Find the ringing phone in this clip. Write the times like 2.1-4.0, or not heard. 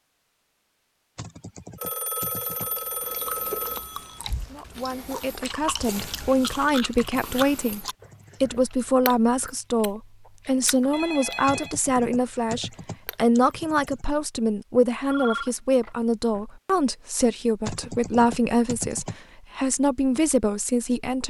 1.8-4.2, 10.9-11.8, 15.1-16.4.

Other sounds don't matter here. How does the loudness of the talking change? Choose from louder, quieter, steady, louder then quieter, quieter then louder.
steady.